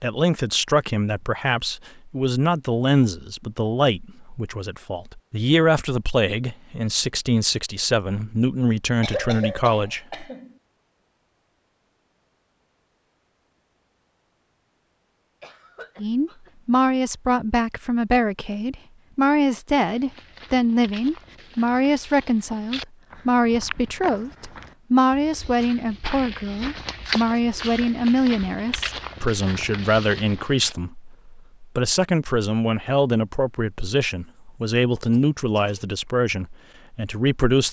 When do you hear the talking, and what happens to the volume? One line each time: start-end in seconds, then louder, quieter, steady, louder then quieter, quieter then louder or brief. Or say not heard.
0.0-10.0 steady
15.9-37.6 steady.